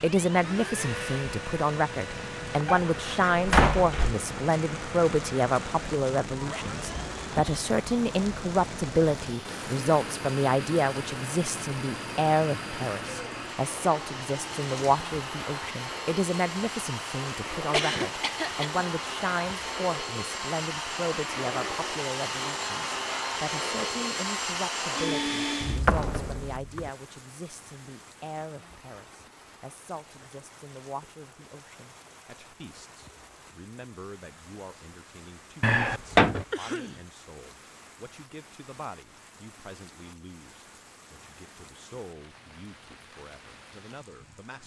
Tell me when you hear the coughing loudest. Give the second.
18 s.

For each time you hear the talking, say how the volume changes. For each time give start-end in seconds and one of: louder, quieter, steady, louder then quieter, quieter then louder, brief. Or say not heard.
0.0-44.6 quieter.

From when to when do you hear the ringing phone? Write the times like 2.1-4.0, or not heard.
not heard.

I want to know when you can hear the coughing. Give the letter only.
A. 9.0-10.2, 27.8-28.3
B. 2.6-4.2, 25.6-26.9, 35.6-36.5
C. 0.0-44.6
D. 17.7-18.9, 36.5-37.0
D.